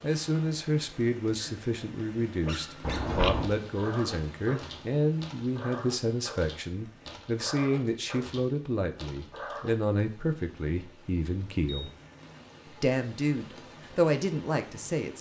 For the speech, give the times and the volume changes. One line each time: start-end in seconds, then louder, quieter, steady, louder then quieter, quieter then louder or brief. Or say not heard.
0.0-11.9 steady
12.7-15.1 brief.